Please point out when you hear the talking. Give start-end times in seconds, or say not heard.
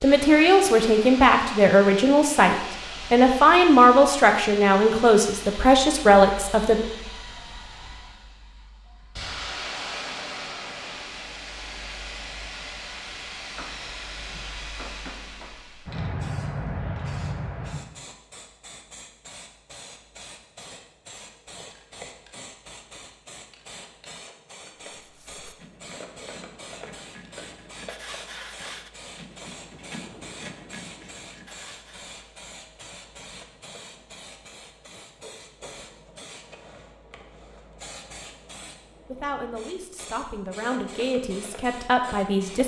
0.0-6.8, 39.0-42.6.